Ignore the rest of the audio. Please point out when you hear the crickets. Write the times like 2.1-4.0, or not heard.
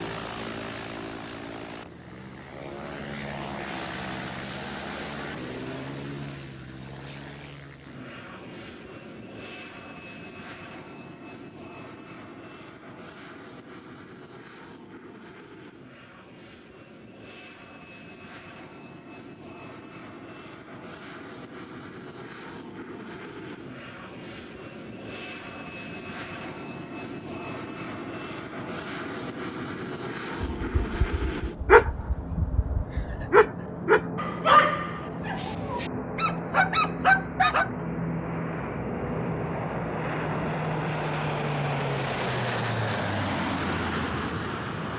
not heard.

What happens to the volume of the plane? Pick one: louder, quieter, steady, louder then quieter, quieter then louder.
quieter then louder.